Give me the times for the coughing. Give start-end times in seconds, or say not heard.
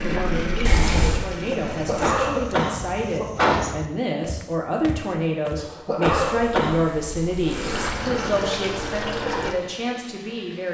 1.7-3.6, 5.6-6.8.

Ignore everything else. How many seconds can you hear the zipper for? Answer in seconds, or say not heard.
2 s.